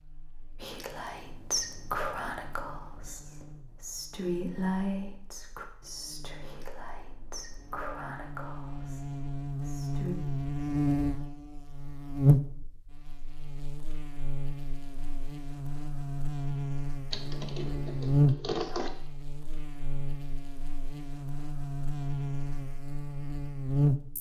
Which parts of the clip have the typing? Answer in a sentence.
You can hear the typing from 17.1 to 18.9 s.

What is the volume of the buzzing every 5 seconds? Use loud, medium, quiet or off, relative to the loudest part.
quiet, medium, loud, loud, loud.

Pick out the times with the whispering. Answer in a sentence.
You can hear the whispering from 0.6 to 10.2 s.